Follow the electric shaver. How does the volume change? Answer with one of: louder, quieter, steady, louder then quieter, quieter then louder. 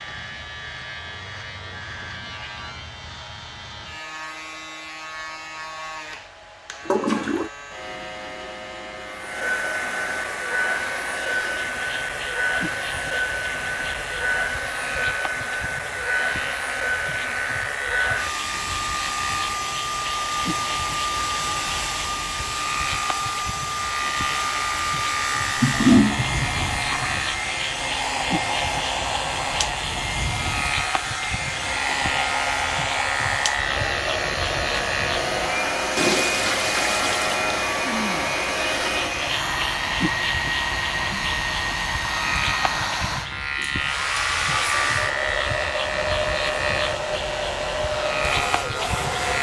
louder.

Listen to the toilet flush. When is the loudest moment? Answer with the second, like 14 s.
26 s.